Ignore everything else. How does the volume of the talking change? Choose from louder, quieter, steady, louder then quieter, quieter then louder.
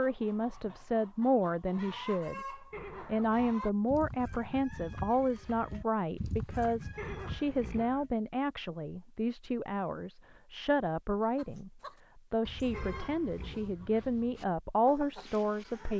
steady.